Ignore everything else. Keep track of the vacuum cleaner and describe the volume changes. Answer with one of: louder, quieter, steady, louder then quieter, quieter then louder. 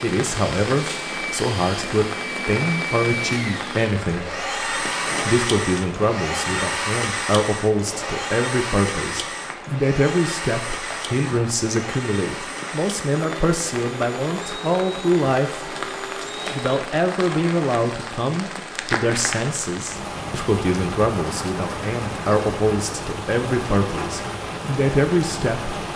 quieter.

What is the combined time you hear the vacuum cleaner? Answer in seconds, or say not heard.
17 s.